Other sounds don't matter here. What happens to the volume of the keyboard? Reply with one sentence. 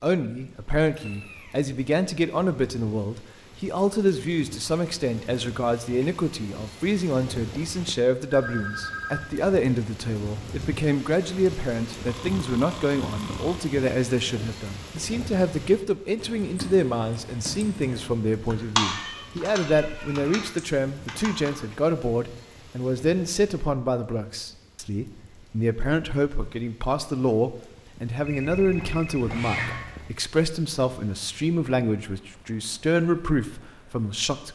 The loudness of the keyboard goes up, then down.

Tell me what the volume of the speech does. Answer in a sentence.
The loudness of the speech stays about the same.